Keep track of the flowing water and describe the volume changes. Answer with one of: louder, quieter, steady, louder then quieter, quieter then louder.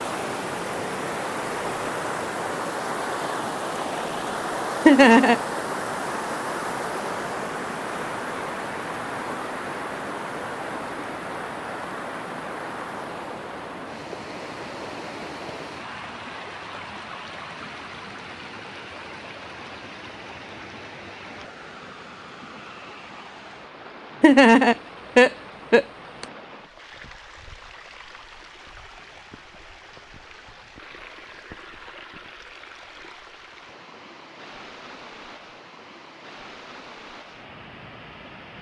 quieter.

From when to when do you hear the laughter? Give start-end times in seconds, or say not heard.
4.8-5.3, 24.2-26.2.